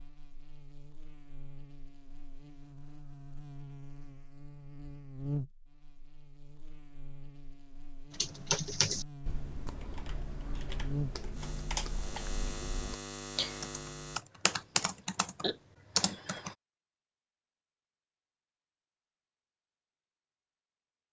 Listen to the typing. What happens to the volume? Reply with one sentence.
The volume of the typing goes down, then up.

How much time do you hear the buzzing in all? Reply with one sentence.
The buzzing can be heard for 14 seconds in total.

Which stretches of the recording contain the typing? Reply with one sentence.
The typing can be heard from 8.1 to 16.6 s.